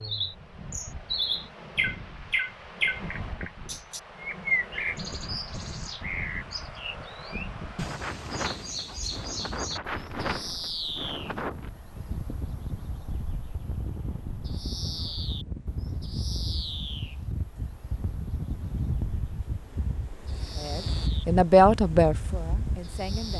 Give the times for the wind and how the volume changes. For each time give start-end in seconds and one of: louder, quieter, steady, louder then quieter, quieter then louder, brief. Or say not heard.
0.0-23.3 louder.